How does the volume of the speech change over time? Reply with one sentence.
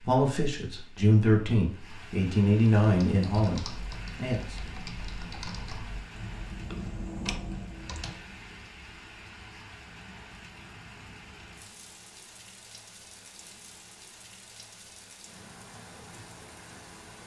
The loudness of the speech goes down.